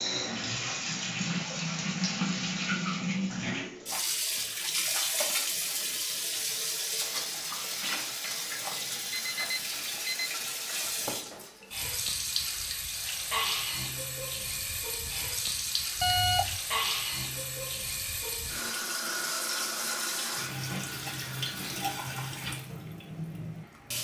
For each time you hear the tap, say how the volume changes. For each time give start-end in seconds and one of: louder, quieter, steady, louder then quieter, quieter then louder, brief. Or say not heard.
0.0-23.9 steady.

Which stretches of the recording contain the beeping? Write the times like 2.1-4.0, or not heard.
9.1-10.3, 16.0-16.6.